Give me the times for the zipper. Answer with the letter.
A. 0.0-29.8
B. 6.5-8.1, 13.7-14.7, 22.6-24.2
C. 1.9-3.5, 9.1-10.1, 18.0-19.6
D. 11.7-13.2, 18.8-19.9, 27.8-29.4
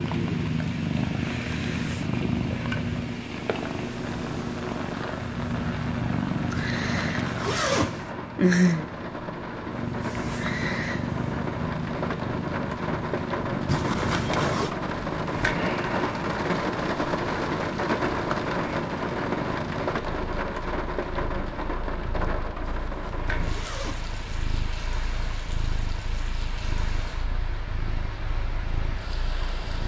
B.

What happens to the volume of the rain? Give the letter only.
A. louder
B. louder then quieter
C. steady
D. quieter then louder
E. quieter
B.